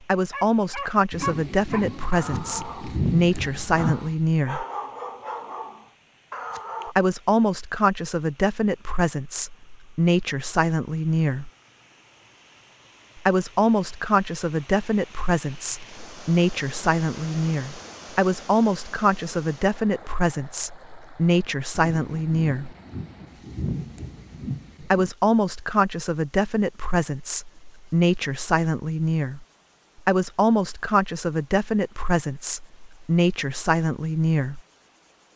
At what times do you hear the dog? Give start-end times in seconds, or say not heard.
0.3-7.0.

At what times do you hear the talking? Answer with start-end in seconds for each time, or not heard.
0.1-4.7, 6.8-11.5, 13.2-22.8, 24.8-29.4, 30.1-34.6.